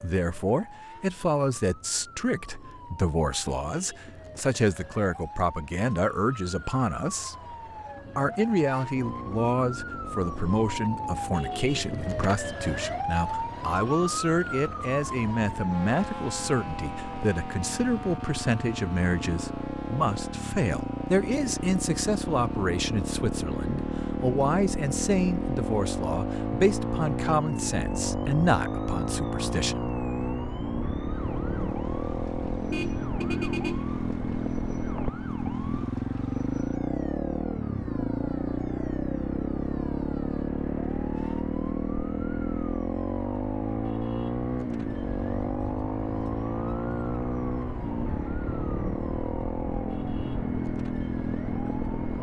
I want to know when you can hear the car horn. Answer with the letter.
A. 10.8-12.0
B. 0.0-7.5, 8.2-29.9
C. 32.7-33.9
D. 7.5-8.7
C.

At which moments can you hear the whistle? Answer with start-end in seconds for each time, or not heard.
not heard.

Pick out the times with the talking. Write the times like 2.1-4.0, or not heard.
0.0-7.5, 8.2-29.9.